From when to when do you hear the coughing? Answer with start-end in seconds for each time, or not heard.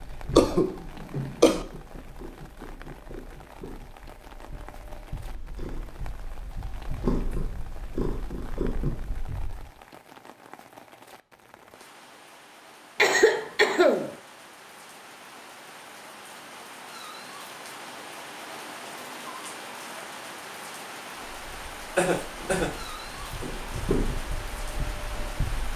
0.3-1.6, 12.9-14.2, 21.9-22.8.